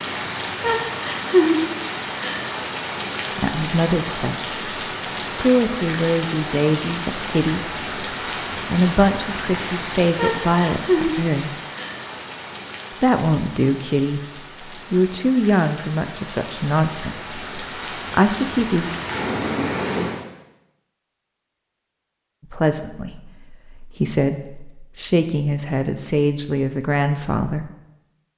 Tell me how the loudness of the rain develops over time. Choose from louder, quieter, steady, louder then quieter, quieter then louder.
quieter then louder.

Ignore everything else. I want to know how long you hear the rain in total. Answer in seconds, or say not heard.
20 s.